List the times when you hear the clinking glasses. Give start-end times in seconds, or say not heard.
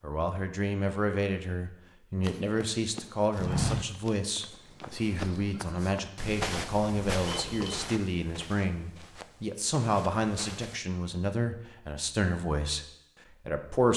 7.2-8.0.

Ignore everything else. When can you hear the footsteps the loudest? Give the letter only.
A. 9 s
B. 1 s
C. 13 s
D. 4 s
D.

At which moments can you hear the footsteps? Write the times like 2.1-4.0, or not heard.
2.2-10.8.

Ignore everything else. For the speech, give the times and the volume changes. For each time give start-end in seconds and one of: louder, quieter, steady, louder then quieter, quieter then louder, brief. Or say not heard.
0.0-13.9 steady.